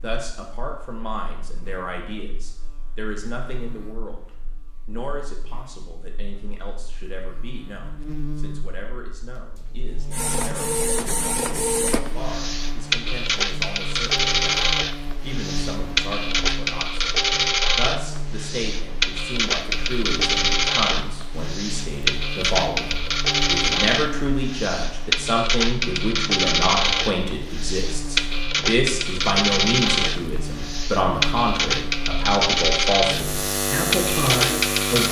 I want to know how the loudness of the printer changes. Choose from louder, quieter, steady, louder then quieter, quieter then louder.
steady.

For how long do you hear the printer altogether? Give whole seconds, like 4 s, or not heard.
25 s.